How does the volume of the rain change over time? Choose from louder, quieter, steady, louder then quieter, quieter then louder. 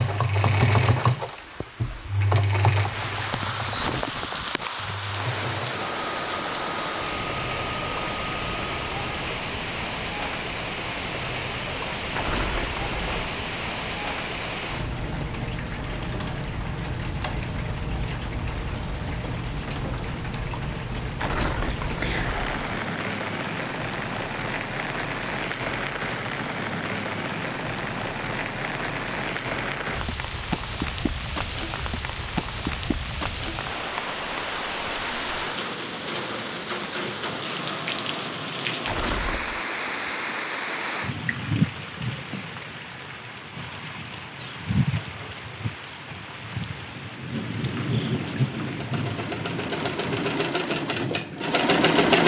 steady.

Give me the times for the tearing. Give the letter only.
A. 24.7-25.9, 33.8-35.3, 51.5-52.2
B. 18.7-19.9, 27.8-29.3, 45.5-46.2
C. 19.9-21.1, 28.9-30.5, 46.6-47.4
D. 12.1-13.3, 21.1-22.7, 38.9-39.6
D.